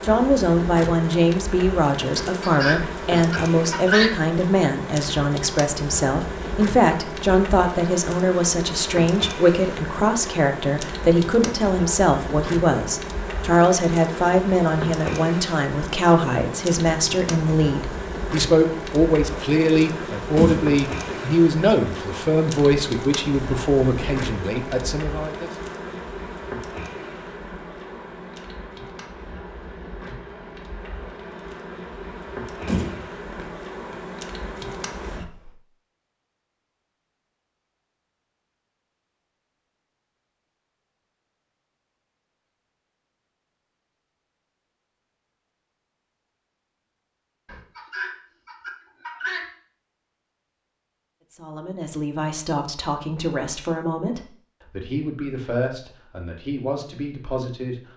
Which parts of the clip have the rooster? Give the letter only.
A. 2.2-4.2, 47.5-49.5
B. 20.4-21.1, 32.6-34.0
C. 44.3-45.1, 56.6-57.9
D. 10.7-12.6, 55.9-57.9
A.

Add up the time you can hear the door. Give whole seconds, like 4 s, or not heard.
2 s.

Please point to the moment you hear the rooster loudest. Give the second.
4 s.